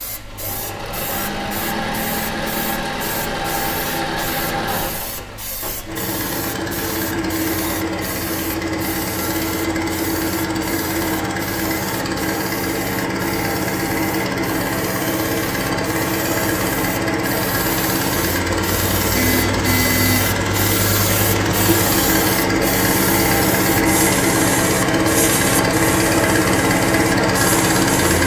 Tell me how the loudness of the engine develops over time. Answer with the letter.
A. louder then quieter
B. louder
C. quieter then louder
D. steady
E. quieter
B.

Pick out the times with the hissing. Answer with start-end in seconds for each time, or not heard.
0.0-28.1.